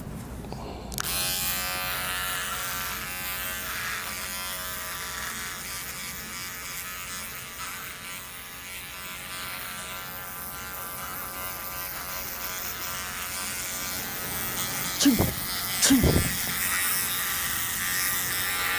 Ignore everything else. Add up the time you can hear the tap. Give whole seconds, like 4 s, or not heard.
not heard.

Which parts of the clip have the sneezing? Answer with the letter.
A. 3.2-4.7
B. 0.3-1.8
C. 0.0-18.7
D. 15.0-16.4
D.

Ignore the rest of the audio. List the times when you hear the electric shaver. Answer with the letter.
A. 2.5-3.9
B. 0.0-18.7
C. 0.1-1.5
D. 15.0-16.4
B.